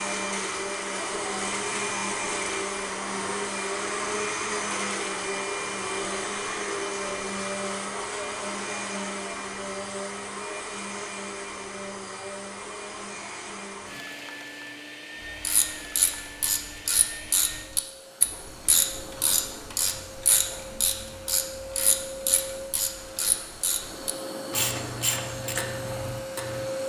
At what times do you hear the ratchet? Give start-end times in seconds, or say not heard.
15.4-26.7.